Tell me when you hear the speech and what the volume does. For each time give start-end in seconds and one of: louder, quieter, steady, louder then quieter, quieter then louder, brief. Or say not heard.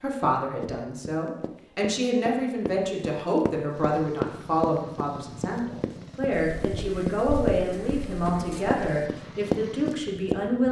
0.0-10.6 steady.